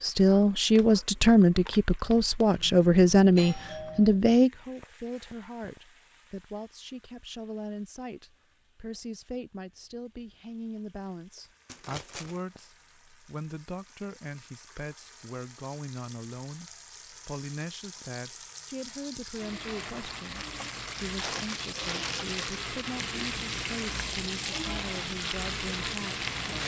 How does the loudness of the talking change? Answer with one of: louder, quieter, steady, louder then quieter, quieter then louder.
quieter.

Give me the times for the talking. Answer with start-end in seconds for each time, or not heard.
0.0-26.6.